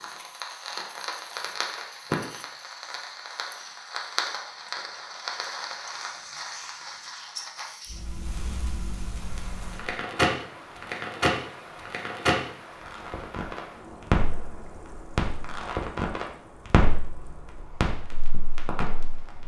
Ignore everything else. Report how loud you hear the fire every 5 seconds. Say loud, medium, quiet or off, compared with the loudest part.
medium, medium, loud, loud.